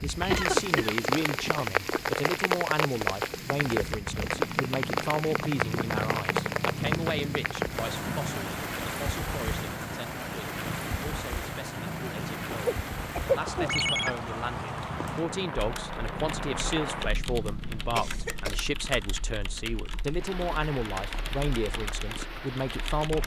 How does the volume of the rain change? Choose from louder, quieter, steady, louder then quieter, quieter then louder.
quieter.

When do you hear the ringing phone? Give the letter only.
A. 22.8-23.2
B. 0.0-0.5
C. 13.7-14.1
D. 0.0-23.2
C.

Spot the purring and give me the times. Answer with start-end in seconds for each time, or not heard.
3.2-18.6.